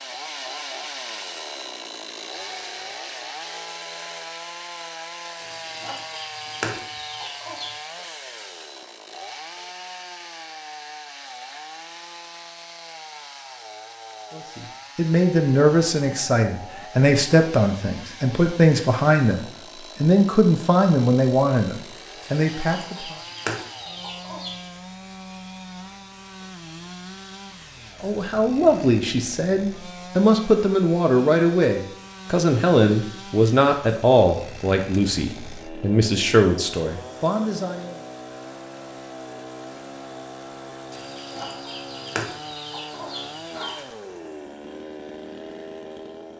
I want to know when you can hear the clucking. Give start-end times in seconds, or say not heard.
5.3-7.8, 22.2-24.7, 40.9-43.9.